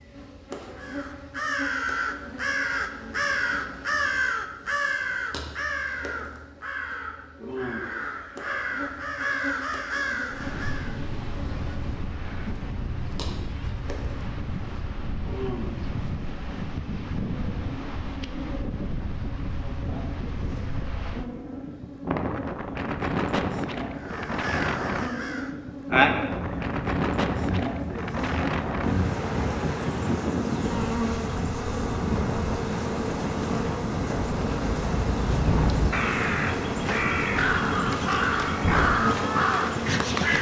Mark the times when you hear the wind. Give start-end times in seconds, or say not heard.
10.3-40.3.